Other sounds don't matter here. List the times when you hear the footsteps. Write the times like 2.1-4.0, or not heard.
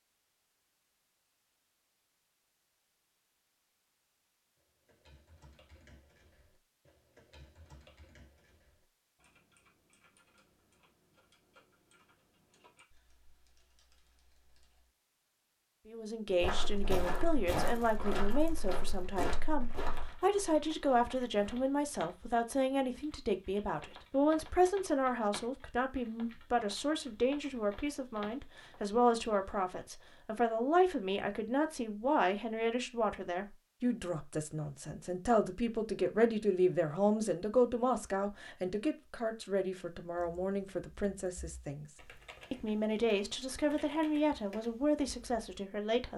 16.3-21.6.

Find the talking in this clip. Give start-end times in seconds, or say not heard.
15.8-41.9, 42.5-46.1.